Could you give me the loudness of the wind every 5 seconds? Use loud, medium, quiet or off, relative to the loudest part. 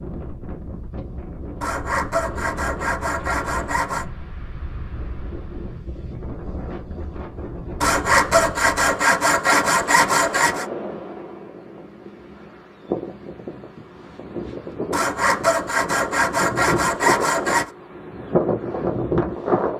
medium, medium, medium, loud.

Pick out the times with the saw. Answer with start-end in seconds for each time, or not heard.
1.6-4.0, 7.8-10.7, 14.9-17.7.